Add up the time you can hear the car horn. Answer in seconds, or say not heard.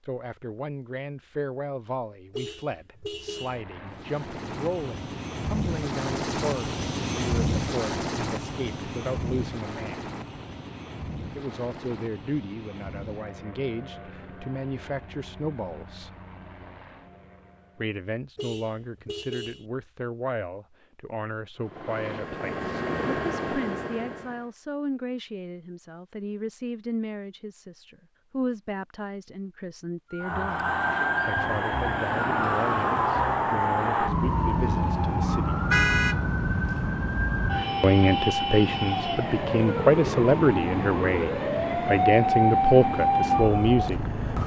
3 s.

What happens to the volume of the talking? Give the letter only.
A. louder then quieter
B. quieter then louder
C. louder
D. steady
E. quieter
C.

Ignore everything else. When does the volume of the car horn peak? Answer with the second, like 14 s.
36 s.